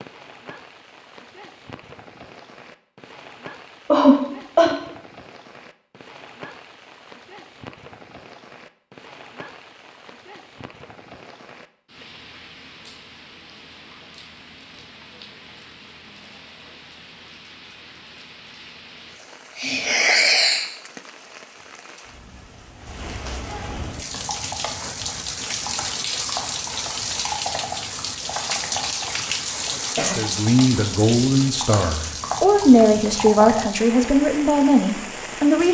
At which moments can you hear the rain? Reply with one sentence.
The rain can be heard from 0.0 to 35.6 s.